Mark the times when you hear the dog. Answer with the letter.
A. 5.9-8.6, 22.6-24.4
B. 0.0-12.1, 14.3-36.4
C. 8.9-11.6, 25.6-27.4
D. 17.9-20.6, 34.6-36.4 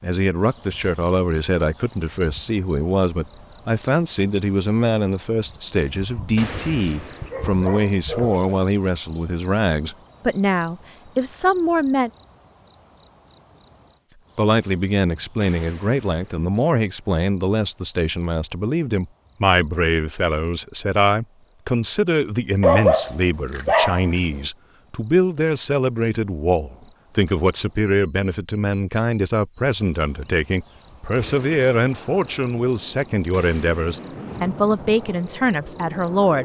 A.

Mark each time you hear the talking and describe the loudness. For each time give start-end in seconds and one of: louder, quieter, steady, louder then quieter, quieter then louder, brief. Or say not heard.
0.0-12.1 steady
14.3-36.4 steady.